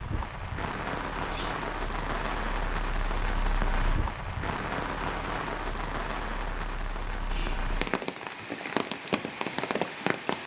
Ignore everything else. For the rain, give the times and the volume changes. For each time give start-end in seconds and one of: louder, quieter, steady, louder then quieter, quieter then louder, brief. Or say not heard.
0.0-10.4 steady.